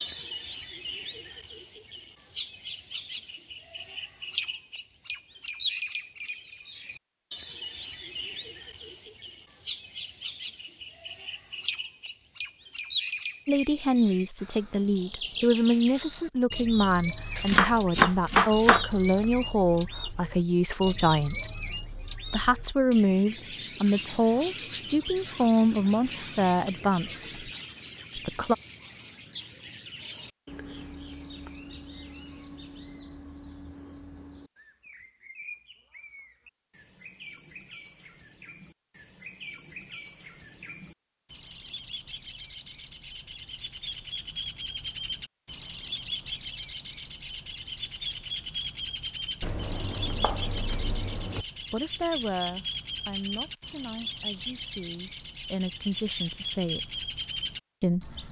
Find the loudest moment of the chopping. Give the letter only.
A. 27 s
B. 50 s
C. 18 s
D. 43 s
C.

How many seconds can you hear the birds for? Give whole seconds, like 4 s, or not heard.
58 s.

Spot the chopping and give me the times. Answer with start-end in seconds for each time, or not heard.
17.4-19.2, 49.4-51.5.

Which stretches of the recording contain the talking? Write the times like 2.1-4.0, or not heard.
13.4-21.5, 22.3-27.4, 28.1-28.6, 51.7-57.1, 57.8-58.2.